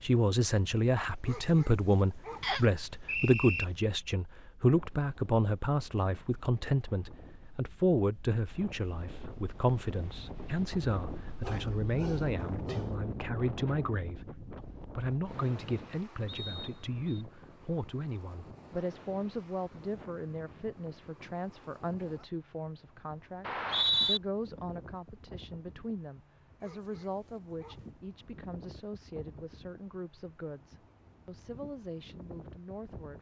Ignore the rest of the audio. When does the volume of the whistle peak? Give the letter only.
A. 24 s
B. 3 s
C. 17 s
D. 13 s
A.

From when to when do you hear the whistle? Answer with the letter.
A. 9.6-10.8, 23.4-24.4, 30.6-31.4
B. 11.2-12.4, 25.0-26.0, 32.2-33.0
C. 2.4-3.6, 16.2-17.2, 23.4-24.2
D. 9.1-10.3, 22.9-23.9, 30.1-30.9
C.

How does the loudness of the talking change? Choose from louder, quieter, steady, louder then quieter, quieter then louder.
quieter.